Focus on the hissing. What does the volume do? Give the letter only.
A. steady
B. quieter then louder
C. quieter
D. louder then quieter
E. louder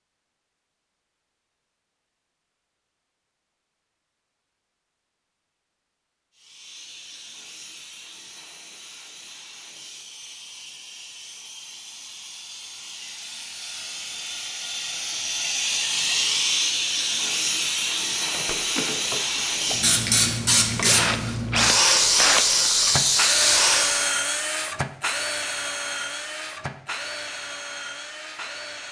E.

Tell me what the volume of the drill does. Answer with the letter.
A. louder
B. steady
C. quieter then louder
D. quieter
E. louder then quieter
E.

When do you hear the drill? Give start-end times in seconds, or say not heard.
18.2-28.8.